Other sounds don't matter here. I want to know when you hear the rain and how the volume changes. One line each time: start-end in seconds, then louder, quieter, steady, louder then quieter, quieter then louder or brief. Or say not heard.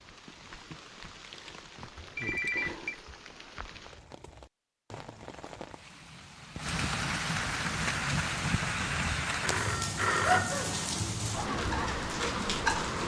0.0-13.0 louder.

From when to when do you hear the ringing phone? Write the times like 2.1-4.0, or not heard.
2.1-3.0, 9.4-10.9.